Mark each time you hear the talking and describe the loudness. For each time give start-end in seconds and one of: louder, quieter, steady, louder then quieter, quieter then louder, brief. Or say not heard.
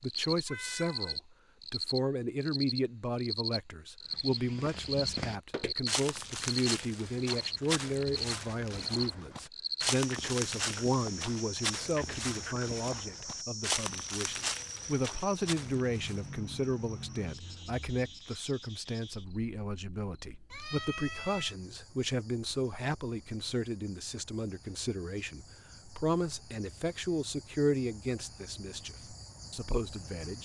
0.0-30.4 steady.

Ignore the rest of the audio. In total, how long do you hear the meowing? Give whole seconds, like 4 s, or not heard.
2 s.